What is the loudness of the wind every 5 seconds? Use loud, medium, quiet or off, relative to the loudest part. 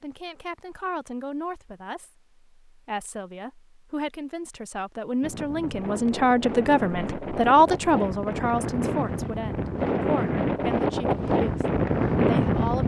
off, medium, loud.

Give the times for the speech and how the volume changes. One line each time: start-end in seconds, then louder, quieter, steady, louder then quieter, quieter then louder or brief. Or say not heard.
0.0-12.8 louder then quieter.